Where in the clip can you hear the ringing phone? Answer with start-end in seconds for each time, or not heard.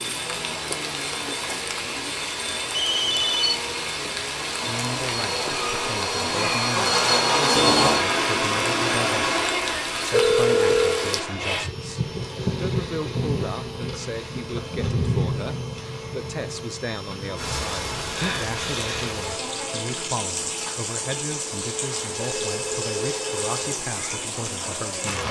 2.7-3.6, 10.1-11.1, 22.1-23.8.